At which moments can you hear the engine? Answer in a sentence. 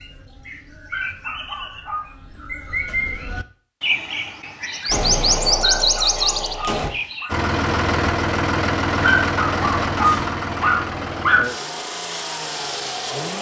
You can hear the engine from 7.2 to 13.3 s.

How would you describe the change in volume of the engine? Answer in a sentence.
The loudness of the engine goes down.